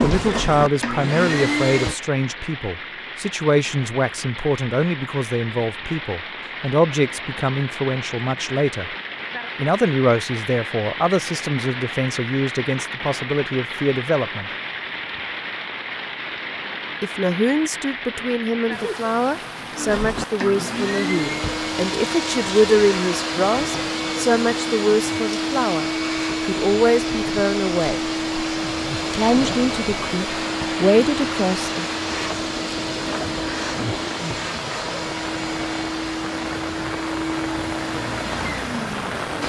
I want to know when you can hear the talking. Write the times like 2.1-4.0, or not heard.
0.0-8.9, 9.6-14.5, 17.0-28.0, 29.0-31.9.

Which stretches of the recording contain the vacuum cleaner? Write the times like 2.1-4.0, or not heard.
0.0-1.9, 19.7-39.4.